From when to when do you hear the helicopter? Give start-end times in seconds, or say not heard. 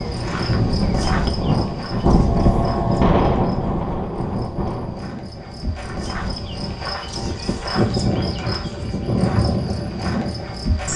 not heard.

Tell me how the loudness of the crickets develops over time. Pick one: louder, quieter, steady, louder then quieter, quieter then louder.
quieter then louder.